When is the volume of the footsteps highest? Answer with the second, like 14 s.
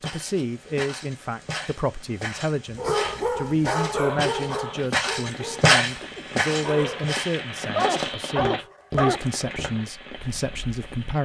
6 s.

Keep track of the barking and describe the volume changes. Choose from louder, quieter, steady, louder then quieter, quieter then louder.
quieter then louder.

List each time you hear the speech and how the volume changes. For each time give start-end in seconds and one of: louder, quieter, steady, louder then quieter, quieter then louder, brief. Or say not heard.
0.0-11.2 steady.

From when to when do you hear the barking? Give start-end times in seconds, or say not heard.
2.8-9.3.